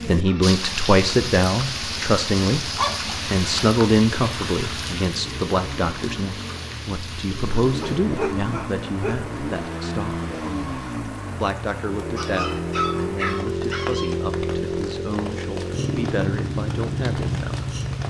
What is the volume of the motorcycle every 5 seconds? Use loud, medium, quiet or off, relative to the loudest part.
quiet, medium, loud, loud.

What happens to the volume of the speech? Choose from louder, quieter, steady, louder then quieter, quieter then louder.
quieter.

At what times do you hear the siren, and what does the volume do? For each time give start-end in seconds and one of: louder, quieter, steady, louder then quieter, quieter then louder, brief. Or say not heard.
not heard.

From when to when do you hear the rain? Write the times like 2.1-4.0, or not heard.
0.0-18.0.